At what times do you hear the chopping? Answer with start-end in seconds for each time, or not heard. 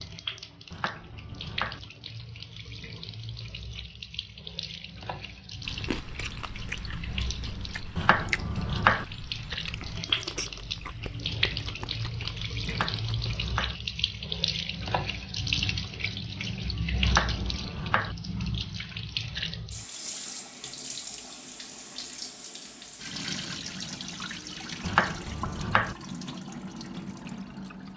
0.7-1.8, 8.0-9.1, 12.7-13.8, 17.0-18.1, 24.8-25.9.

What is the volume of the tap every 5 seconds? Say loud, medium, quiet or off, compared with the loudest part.
medium, medium, loud, loud, medium, medium.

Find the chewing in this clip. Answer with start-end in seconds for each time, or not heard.
5.7-13.3.